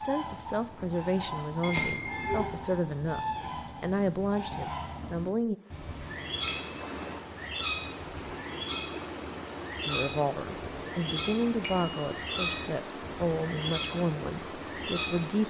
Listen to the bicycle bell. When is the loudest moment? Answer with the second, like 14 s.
2 s.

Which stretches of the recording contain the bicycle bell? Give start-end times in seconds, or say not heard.
1.6-2.5, 6.5-6.9, 11.6-12.7.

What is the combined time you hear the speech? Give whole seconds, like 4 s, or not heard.
11 s.